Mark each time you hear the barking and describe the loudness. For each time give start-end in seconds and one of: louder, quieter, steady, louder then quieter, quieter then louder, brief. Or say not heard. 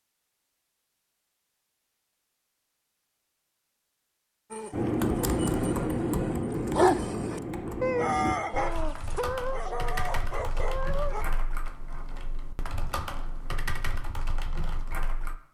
4.5-11.2 louder then quieter.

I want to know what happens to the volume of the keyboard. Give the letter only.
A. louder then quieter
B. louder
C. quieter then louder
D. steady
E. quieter
E.